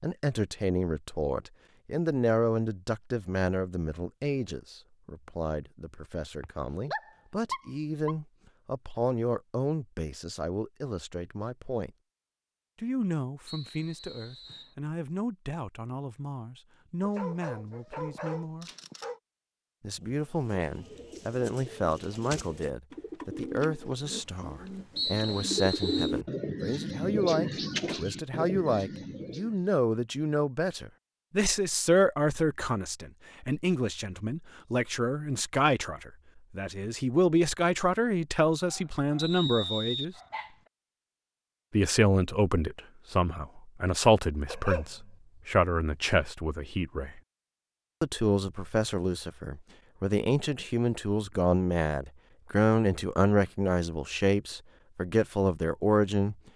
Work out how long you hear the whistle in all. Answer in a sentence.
You can hear the whistle for 4 seconds altogether.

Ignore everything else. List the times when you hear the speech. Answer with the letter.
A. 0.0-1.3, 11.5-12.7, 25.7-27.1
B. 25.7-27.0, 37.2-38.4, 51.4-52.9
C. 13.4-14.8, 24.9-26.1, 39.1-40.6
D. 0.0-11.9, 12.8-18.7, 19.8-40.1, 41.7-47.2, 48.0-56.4
D.